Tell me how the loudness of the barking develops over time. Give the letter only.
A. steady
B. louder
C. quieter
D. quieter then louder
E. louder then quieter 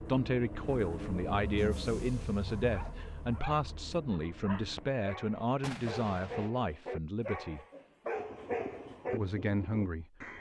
B.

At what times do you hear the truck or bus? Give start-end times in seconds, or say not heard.
0.0-4.9.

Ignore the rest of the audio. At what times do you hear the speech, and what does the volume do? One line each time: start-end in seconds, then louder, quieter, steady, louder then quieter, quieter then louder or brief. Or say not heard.
0.0-7.6 steady
9.1-10.1 brief.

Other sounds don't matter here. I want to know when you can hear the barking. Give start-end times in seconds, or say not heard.
2.6-9.2.